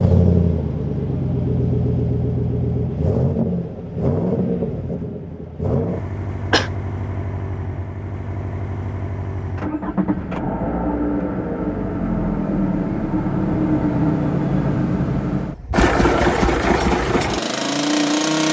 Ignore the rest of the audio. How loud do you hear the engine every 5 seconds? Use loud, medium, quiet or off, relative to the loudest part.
loud, medium, loud, loud.